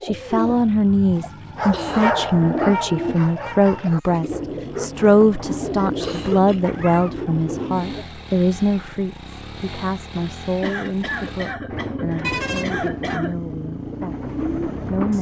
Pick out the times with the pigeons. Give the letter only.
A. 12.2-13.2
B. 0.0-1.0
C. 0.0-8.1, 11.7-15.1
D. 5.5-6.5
C.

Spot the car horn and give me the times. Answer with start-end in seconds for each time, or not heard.
12.2-13.2.